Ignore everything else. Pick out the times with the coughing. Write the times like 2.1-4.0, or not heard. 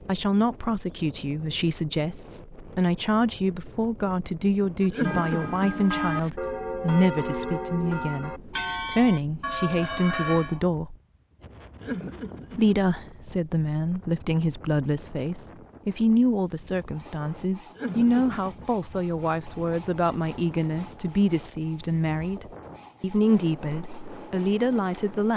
4.9-6.0, 11.8-12.8, 17.8-18.6.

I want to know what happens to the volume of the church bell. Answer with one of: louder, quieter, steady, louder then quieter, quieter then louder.
steady.